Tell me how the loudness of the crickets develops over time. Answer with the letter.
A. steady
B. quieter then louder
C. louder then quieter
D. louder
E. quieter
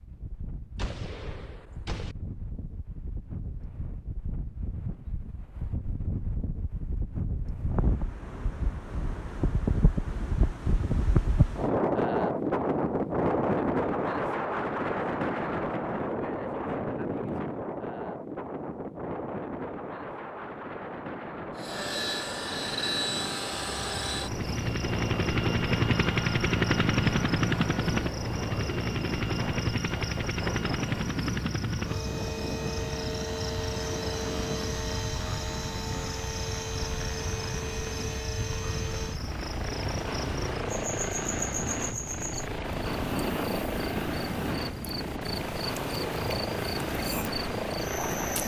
A.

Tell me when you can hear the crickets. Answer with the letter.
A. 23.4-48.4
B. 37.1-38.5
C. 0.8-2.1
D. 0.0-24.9
A.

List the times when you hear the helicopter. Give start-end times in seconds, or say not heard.
21.6-48.4.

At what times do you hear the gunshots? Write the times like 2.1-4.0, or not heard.
0.8-2.1.